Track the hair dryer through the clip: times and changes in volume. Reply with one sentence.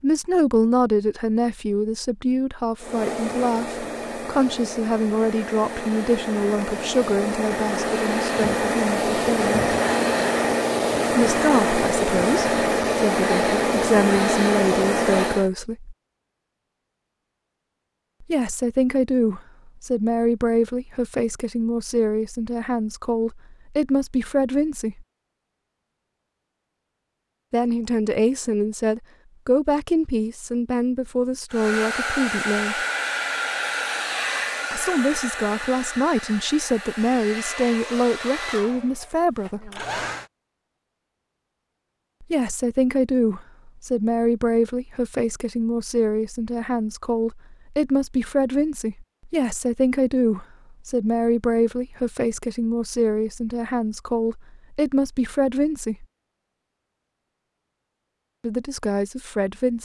You can hear the hair dryer from 2.8 to 15.5 s, getting louder; and from 31.5 to 40.2 s, getting quieter.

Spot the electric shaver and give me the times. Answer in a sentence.
You can't hear the electric shaver here.